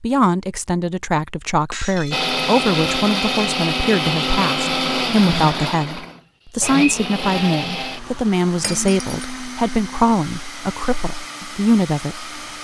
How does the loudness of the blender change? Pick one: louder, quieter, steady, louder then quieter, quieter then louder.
quieter.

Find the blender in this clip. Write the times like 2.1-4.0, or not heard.
2.1-12.6.